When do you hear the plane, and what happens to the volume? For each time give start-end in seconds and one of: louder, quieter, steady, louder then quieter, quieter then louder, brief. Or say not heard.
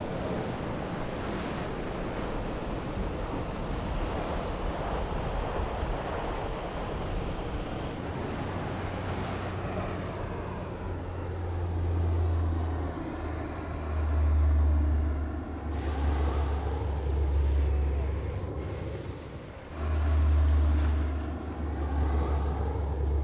0.0-23.1 steady.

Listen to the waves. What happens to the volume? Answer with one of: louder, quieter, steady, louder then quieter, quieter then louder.
quieter.